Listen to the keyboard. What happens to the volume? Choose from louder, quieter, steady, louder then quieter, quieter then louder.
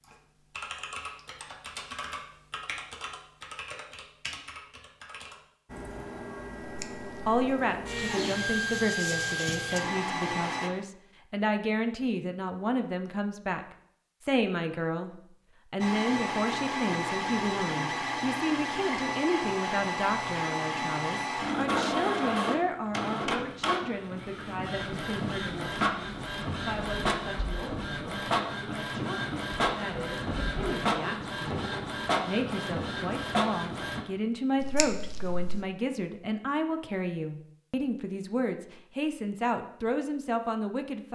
quieter.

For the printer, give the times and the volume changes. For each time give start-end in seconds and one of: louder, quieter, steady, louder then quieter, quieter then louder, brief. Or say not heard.
5.7-10.7 louder
15.8-34.0 steady.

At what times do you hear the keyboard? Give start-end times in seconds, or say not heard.
0.0-6.1.